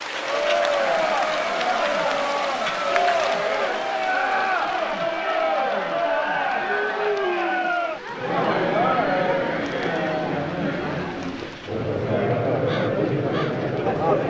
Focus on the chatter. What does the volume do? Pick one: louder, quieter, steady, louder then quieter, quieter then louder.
steady.